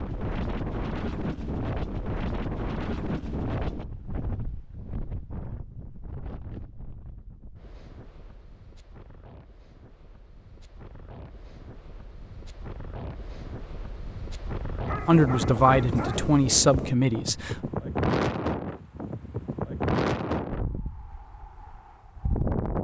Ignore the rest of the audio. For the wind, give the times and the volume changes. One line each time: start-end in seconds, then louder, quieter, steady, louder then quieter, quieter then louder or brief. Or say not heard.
0.0-22.8 quieter then louder.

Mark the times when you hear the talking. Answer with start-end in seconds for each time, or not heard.
15.1-17.6.